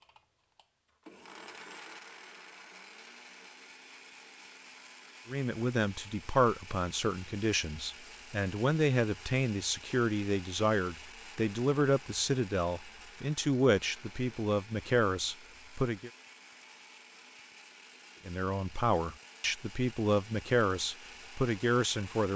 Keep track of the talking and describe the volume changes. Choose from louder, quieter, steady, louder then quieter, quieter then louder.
steady.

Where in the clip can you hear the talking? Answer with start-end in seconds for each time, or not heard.
5.2-16.1, 18.2-22.3.